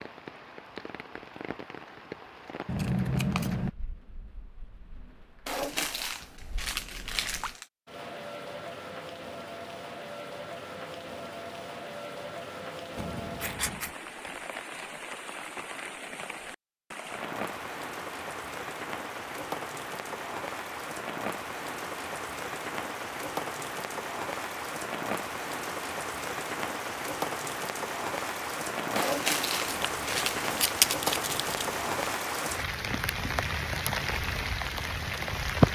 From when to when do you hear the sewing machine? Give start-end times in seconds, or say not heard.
not heard.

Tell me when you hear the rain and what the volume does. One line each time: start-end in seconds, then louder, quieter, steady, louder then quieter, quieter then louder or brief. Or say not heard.
0.0-35.7 louder.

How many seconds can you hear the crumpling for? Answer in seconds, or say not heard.
4 s.